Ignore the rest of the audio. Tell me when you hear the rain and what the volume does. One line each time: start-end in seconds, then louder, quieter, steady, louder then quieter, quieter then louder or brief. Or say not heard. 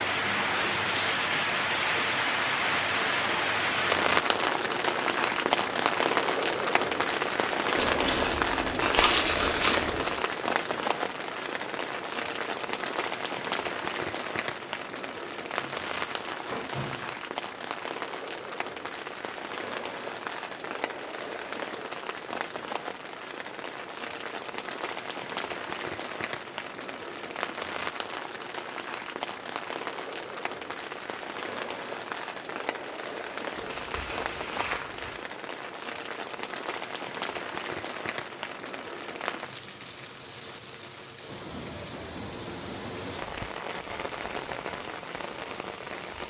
0.0-46.2 quieter.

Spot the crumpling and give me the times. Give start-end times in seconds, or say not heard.
7.8-10.2, 15.6-17.1, 33.5-35.2.